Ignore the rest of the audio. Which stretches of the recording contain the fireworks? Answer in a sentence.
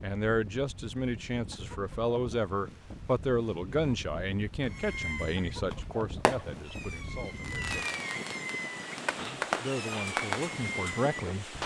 The fireworks can be heard from 4.6 to 11.6 s.